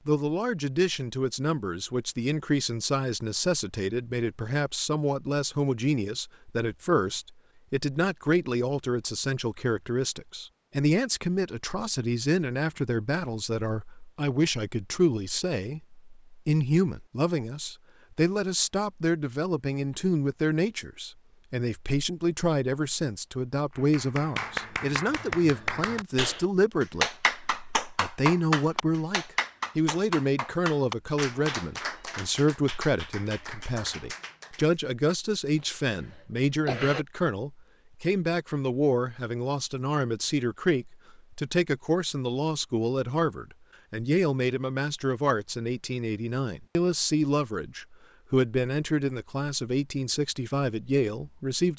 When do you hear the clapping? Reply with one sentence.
You can hear the clapping from 23.8 to 34.7 s.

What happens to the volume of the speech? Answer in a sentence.
The loudness of the speech stays about the same.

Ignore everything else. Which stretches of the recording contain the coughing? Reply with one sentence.
The coughing can be heard from 35.5 to 37.0 s.